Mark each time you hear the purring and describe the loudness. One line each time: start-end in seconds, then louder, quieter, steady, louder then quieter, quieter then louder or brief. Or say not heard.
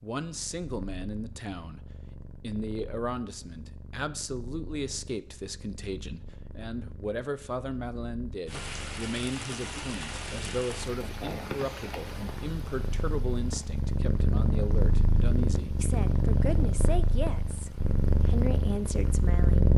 0.2-19.7 louder.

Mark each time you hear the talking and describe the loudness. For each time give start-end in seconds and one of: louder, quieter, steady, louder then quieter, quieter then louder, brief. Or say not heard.
0.0-19.7 steady.